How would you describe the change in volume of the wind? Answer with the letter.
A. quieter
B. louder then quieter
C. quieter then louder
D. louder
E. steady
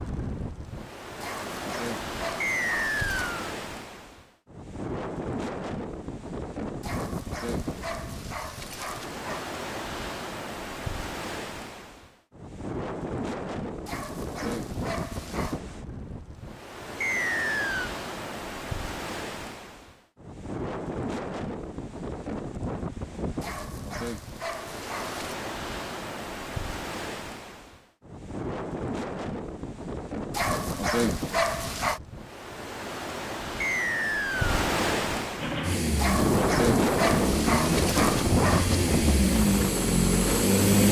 D.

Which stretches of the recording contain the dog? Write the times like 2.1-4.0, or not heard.
1.2-3.4, 6.8-9.4, 13.8-15.6, 23.4-25.4, 30.3-32.0, 36.0-38.9.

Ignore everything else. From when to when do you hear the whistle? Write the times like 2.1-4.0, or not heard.
2.4-3.5, 17.0-17.9, 33.6-34.5.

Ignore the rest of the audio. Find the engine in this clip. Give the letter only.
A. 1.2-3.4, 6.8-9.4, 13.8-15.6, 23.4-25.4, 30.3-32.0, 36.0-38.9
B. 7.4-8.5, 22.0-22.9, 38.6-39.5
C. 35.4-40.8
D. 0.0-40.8
C.